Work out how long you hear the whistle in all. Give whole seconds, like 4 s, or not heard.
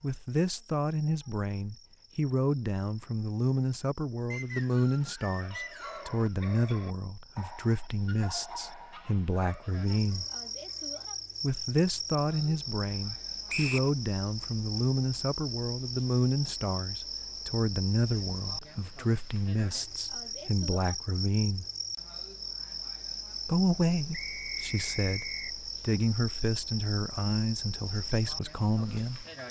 4 s.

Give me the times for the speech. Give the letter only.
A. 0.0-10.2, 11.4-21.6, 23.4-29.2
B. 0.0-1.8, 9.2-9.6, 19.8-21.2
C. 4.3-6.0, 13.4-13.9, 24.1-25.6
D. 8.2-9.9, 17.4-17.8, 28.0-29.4
A.